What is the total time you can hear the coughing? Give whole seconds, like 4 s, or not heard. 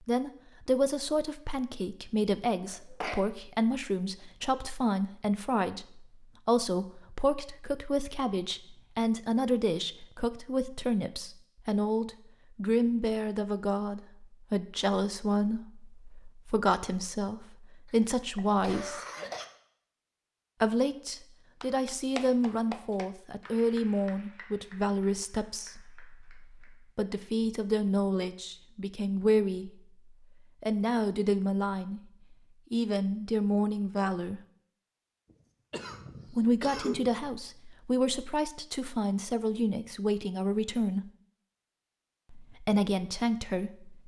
4 s.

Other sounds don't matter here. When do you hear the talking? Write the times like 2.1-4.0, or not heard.
0.1-19.0, 20.6-29.7, 30.6-32.0, 32.7-34.4, 36.3-41.1, 42.3-44.0.